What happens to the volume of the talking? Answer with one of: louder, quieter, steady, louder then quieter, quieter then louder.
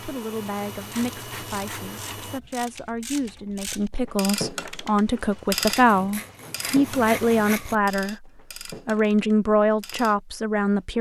louder.